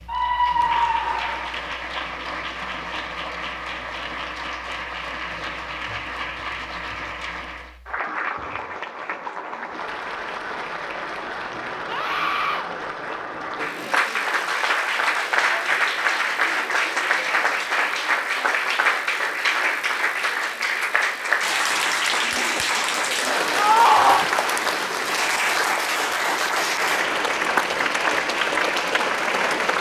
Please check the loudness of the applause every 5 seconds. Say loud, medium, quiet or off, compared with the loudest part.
medium, medium, medium, loud, loud, loud.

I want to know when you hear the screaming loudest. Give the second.
24 s.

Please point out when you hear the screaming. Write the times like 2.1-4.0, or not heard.
0.1-1.6, 11.8-12.7, 23.6-24.2.